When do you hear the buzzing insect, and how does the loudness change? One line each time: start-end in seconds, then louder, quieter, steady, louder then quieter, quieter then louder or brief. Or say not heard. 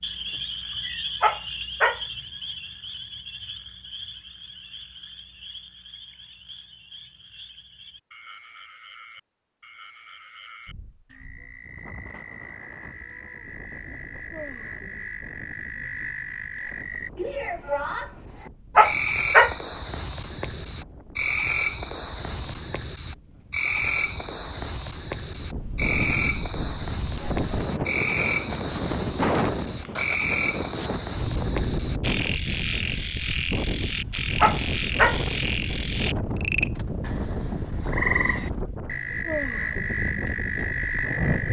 not heard.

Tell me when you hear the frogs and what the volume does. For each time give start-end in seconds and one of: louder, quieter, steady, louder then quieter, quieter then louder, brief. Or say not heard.
0.0-41.4 louder.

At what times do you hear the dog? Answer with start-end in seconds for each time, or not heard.
1.2-2.0, 18.8-19.6, 34.4-35.2.